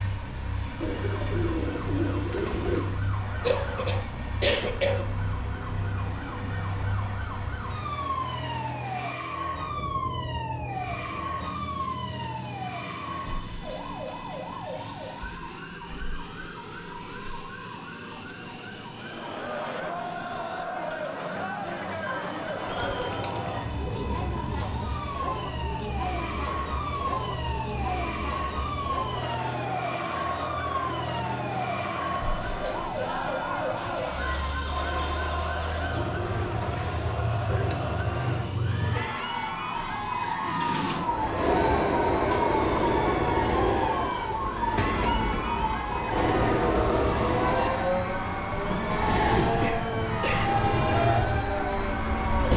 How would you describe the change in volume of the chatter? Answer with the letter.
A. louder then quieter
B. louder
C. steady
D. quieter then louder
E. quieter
C.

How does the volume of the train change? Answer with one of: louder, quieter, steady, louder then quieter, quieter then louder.
louder.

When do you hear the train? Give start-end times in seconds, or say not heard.
0.0-52.5.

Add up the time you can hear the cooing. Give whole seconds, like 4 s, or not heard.
6 s.